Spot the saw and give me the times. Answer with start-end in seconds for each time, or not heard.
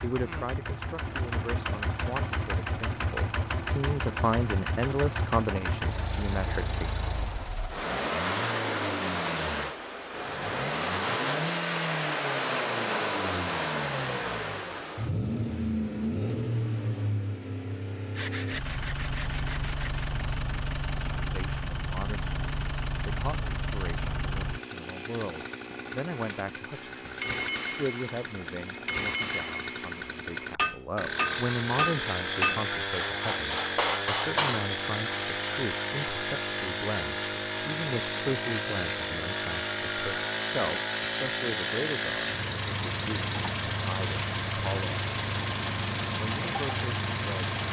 18.1-20.1.